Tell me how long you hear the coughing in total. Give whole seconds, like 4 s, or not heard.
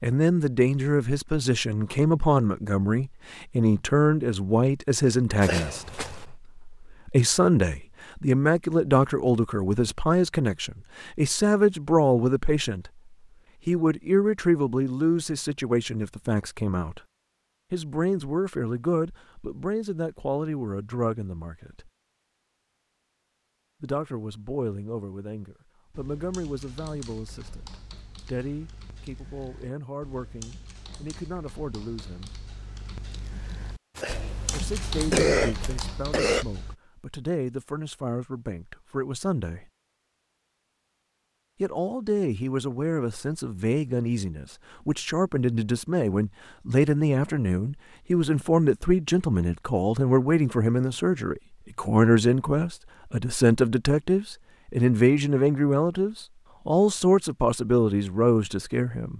3 s.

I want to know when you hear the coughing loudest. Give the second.
35 s.